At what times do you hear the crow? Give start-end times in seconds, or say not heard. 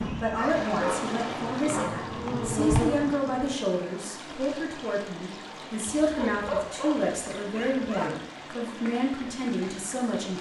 not heard.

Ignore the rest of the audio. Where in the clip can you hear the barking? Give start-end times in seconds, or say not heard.
0.0-2.1, 6.0-8.2.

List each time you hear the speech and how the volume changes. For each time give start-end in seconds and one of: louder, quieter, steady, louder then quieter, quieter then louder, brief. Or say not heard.
0.1-10.3 steady.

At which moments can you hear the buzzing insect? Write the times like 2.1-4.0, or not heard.
0.0-3.6.